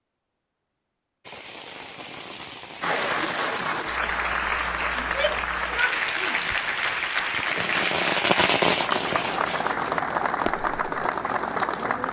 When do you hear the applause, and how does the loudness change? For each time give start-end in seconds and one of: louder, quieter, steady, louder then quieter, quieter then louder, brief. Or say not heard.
2.8-12.0 steady.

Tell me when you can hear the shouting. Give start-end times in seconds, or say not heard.
5.0-6.5.